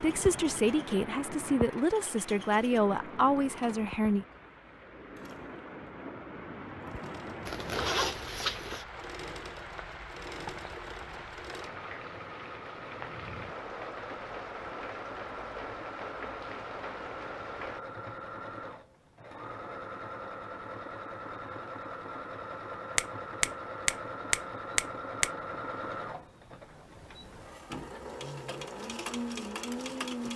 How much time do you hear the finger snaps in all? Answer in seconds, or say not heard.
2 s.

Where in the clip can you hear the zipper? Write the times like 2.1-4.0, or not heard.
7.5-8.8.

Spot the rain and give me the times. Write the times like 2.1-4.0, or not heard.
0.0-17.8.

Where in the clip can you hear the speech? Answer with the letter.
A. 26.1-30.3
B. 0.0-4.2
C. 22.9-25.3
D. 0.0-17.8
B.